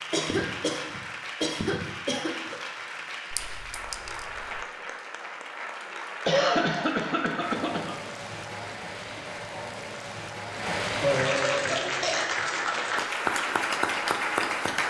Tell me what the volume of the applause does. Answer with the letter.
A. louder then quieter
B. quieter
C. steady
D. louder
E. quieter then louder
D.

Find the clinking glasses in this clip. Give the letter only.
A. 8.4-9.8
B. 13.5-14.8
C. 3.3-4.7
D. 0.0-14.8
C.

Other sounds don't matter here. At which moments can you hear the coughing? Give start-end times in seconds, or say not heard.
0.1-2.5, 6.2-8.0, 11.0-12.2.